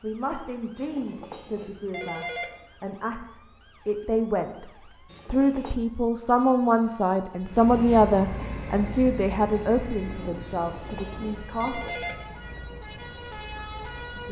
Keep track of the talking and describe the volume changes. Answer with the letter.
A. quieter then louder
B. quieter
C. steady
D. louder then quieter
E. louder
D.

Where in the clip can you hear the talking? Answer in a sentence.
The talking can be heard from 0.0 to 4.7 s and from 5.2 to 12.0 s.